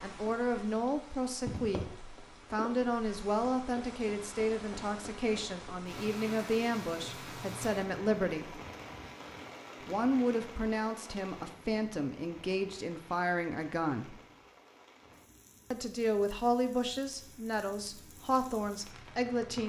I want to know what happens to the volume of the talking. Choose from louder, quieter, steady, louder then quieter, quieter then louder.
steady.